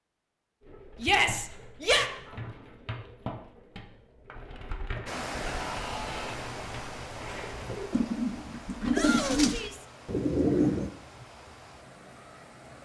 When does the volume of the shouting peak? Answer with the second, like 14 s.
1 s.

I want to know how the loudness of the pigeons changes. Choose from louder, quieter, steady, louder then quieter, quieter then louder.
louder.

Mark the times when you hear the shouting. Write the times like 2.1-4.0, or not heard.
1.0-2.1, 5.4-6.4, 8.9-9.8.